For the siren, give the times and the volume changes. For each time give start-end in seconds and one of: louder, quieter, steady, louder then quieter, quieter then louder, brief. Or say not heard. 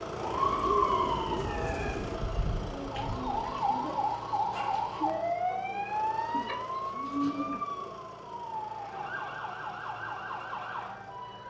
0.1-11.4 quieter.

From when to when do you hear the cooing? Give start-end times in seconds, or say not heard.
0.2-2.2, 6.3-8.0.